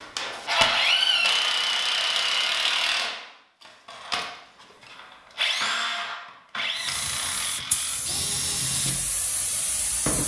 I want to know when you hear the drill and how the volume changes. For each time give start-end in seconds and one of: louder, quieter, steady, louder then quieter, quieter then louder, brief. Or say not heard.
0.0-10.2 quieter.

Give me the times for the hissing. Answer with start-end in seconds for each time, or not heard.
6.7-10.2.